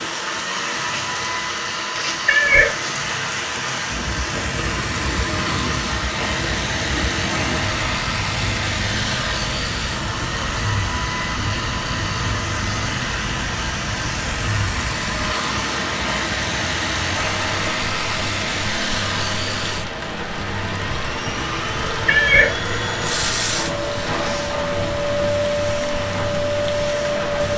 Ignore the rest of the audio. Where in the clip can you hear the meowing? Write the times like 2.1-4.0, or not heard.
2.2-2.7, 22.1-22.6.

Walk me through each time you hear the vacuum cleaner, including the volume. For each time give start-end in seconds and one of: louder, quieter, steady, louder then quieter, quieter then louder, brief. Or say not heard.
0.0-27.5 steady.